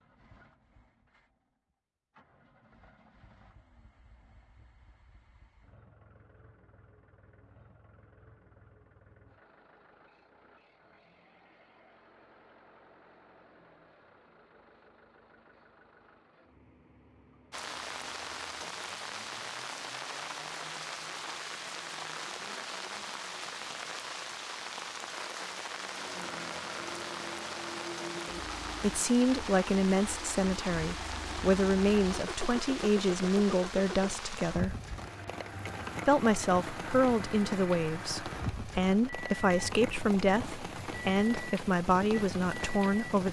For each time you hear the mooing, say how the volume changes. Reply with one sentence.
The mooing can't be heard in this clip.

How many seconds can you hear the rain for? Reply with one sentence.
You can hear the rain for 26 seconds altogether.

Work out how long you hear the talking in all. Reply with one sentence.
You can hear the talking for 13 seconds altogether.